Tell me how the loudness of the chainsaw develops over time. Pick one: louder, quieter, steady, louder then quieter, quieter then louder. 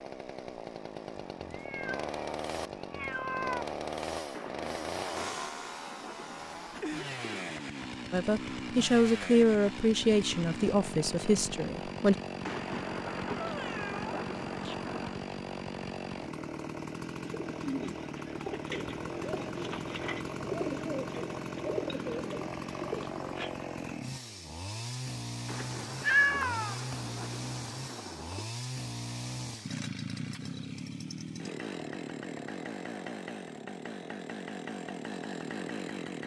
steady.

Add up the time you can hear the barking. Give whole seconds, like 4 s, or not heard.
not heard.